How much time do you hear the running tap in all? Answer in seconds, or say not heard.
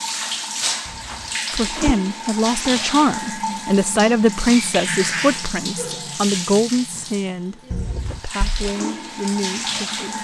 10 s.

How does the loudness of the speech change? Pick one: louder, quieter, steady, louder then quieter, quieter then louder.
quieter.